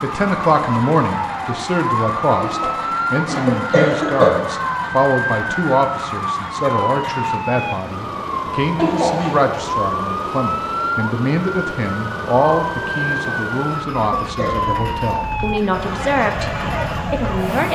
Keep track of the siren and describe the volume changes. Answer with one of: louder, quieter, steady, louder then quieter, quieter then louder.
steady.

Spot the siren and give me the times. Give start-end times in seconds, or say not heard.
0.0-17.6.